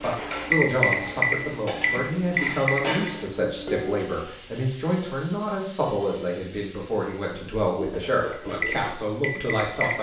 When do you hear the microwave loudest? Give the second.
1 s.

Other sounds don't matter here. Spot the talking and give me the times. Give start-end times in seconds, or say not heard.
0.0-9.9.